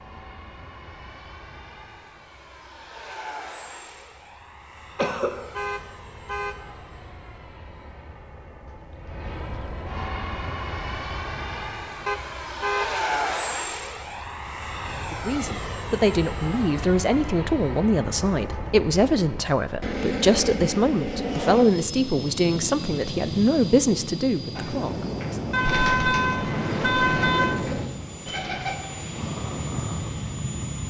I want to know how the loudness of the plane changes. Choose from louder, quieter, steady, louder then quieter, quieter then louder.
louder.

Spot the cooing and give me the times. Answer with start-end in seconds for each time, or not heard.
24.6-28.8.